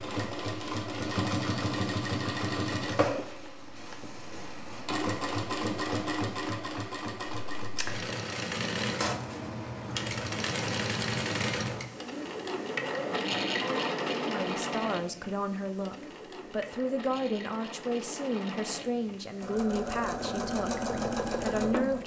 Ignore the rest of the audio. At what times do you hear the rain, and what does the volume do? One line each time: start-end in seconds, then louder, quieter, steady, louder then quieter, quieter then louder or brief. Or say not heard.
not heard.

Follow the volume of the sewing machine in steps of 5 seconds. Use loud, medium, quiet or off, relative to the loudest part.
loud, loud, loud, medium, loud.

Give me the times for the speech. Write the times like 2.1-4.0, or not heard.
14.2-22.0.